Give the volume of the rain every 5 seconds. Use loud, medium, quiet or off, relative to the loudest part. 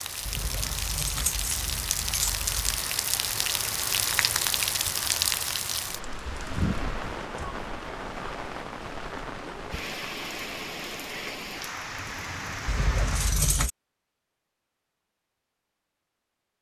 loud, loud, medium, off.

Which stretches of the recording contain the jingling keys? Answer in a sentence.
The jingling keys can be heard from 0.2 to 2.9 s and from 12.7 to 13.7 s.